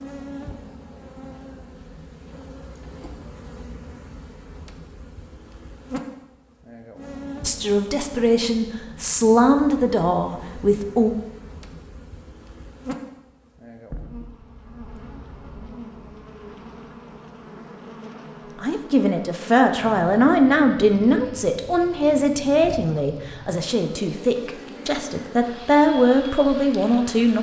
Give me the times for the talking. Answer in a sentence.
The talking can be heard from 7.5 to 11.1 s and from 18.6 to 27.3 s.